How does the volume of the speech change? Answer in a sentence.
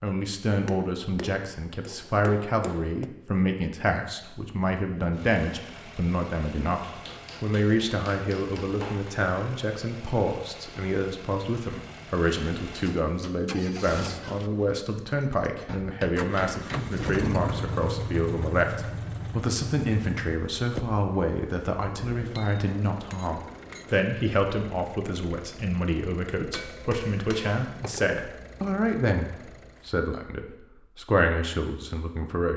The loudness of the speech stays about the same.